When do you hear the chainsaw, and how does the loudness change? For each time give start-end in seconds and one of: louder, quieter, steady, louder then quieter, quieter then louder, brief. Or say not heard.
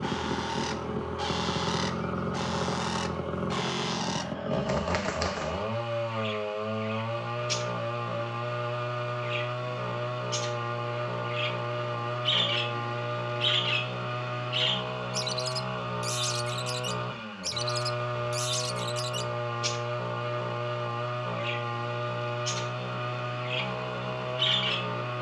0.0-25.1 steady.